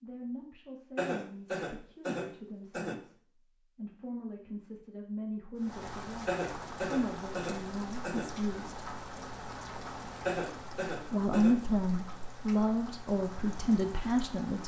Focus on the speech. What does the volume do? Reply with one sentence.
The loudness of the speech goes up.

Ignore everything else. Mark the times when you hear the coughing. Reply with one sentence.
The coughing can be heard from 0.9 to 3.0 s, from 6.2 to 8.2 s and from 10.2 to 11.6 s.